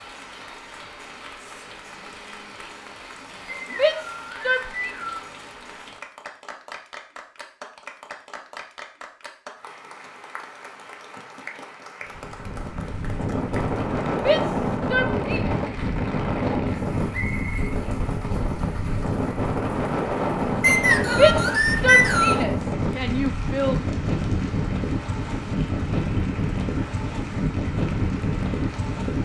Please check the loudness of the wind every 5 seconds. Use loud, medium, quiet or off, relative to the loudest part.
off, off, loud, loud, loud, loud.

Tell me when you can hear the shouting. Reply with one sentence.
The shouting can be heard from 3.7 to 5.0 s, from 14.2 to 15.5 s and from 21.1 to 23.8 s.